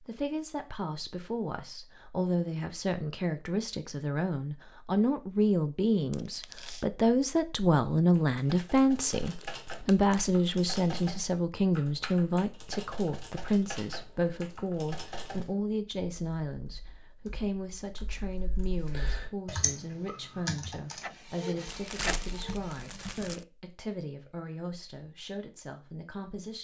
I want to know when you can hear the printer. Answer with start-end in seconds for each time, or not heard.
20.9-22.9.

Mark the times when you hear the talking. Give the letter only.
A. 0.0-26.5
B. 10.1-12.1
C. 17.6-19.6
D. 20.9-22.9
A.